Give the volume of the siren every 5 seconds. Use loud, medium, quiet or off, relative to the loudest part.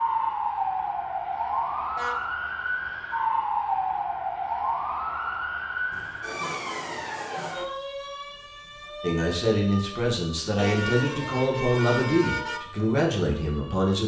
loud, medium, quiet.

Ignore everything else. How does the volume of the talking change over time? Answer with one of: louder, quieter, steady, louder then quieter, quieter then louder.
steady.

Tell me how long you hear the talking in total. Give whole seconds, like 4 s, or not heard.
5 s.